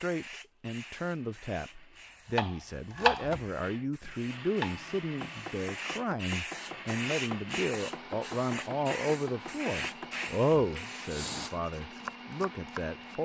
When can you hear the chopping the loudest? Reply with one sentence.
The loudest moment of the chopping is at 3 seconds.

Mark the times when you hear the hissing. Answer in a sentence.
The hissing can be heard from 0.0 to 11.5 s.